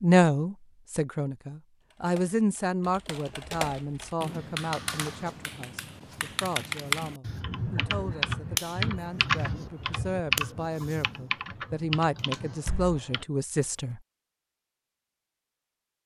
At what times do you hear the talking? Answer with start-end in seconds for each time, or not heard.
0.0-14.0.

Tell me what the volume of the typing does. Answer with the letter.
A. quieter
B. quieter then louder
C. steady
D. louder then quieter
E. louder
D.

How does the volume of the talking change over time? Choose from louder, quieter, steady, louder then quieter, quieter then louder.
quieter then louder.